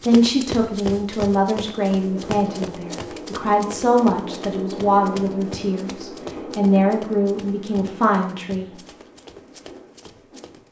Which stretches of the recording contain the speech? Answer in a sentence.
You can hear the speech from 0.1 to 8.7 s.